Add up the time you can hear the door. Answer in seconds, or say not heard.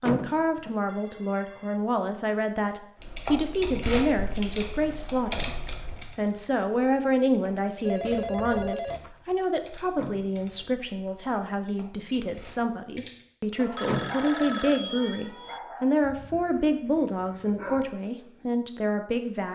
2 s.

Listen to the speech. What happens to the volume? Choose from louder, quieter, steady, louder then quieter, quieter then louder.
steady.